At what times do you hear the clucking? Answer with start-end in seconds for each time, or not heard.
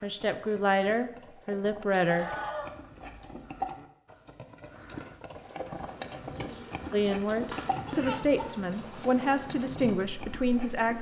2.0-3.6, 6.3-9.1.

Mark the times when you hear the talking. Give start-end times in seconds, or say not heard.
0.0-2.2, 6.9-10.9.